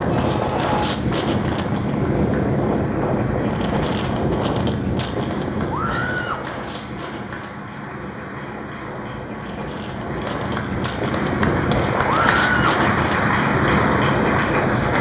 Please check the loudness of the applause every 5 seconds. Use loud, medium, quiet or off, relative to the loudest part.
quiet, quiet, loud.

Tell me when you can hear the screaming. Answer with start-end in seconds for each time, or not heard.
0.1-0.9, 5.7-6.5, 12.1-12.8.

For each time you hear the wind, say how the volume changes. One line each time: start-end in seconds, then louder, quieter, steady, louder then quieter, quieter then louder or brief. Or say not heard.
0.0-14.9 quieter then louder.